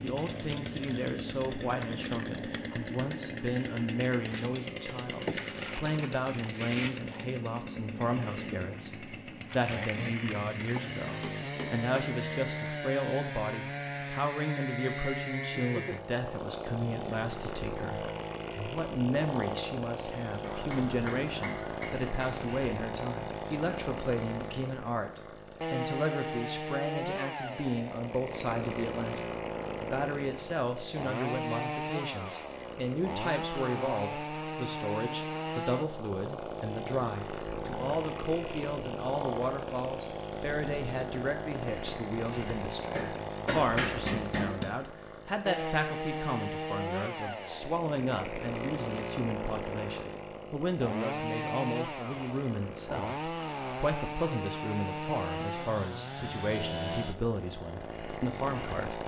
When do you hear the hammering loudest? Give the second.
44 s.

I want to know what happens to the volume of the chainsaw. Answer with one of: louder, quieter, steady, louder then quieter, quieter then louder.
steady.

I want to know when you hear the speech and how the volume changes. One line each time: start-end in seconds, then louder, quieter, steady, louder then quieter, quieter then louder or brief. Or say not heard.
0.0-59.0 steady.